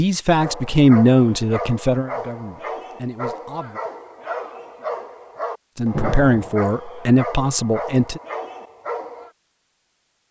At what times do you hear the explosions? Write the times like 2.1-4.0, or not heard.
5.9-6.7.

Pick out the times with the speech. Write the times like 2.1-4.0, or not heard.
0.0-3.8, 5.8-8.2.